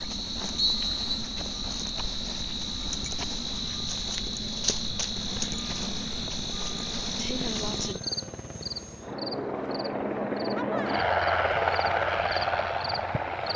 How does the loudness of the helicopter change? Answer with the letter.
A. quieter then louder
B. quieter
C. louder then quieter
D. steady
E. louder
E.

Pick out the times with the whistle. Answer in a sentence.
You can hear the whistle from 0.6 to 1.2 s.